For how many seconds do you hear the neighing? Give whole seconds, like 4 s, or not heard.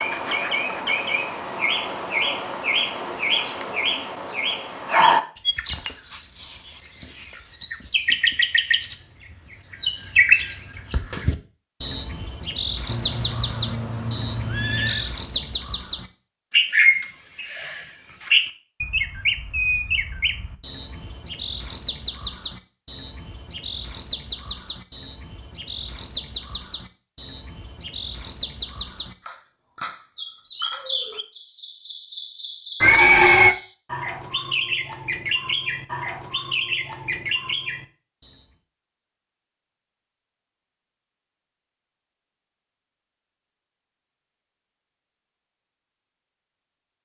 3 s.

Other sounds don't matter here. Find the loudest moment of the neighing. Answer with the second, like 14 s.
33 s.